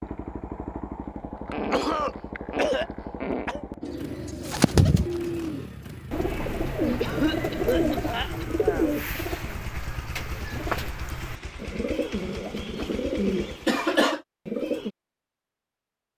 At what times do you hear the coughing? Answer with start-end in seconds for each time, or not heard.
1.5-3.6, 7.0-8.9, 13.7-14.2.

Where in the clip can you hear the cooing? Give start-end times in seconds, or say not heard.
3.8-14.9.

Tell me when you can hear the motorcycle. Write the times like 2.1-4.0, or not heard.
0.0-13.7.